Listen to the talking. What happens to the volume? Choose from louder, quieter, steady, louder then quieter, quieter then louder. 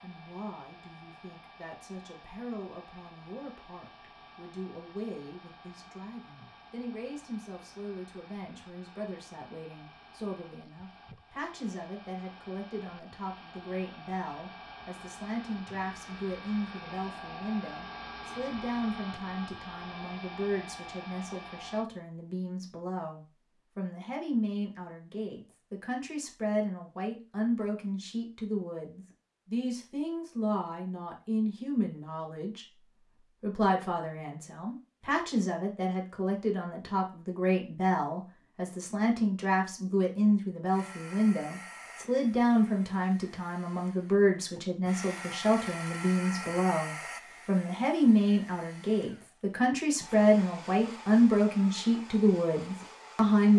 louder.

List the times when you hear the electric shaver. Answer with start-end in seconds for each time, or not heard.
not heard.